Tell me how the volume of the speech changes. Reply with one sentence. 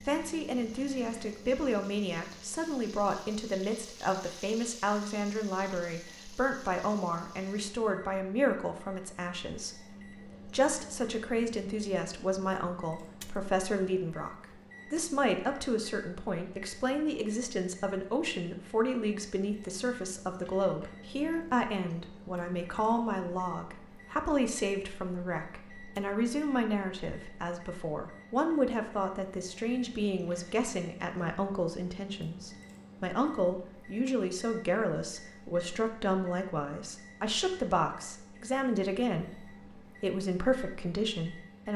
The volume of the speech stays about the same.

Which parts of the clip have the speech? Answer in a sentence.
You can hear the speech from 0.0 to 41.7 s.